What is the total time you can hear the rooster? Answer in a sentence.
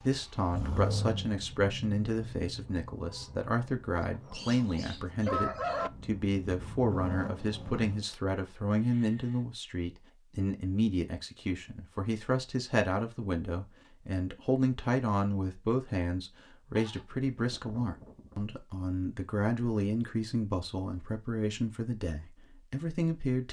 You can hear the rooster for 2 seconds altogether.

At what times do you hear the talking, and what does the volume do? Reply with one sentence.
You can hear the talking from 0.0 to 23.4 s, at a steady volume.